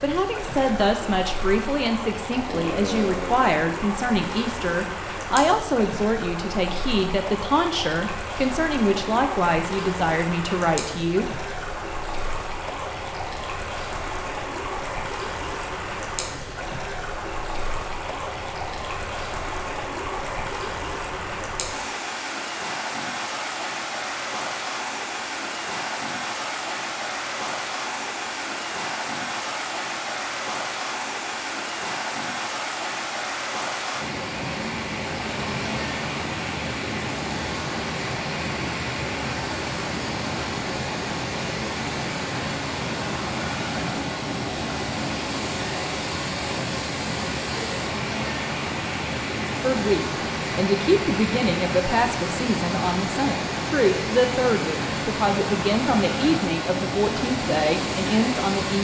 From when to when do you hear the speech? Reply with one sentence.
You can hear the speech from 0.0 to 11.3 s and from 49.6 to 58.7 s.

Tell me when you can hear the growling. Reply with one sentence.
The growling can be heard from 2.5 to 3.5 s.